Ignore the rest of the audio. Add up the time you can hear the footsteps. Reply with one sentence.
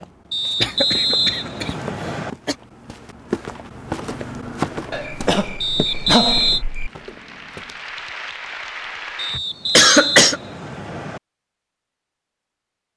You can hear the footsteps for 8 seconds altogether.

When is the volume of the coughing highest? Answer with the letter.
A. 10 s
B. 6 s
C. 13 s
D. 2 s
A.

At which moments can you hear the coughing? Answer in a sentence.
You can hear the coughing from 0.6 to 1.8 s, from 4.9 to 6.9 s and from 9.3 to 10.4 s.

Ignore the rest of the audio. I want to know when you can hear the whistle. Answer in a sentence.
The whistle can be heard from 0.3 to 2.3 s, from 5.6 to 6.7 s and from 9.2 to 11.2 s.